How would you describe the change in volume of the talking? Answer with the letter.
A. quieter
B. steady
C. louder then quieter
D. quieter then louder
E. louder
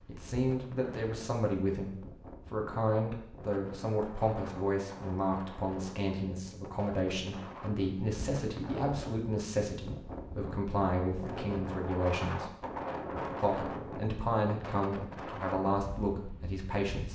B.